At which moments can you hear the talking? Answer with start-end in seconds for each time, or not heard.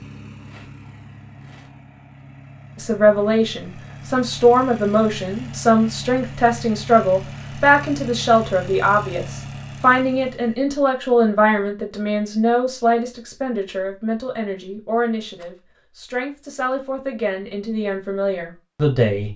2.8-19.3.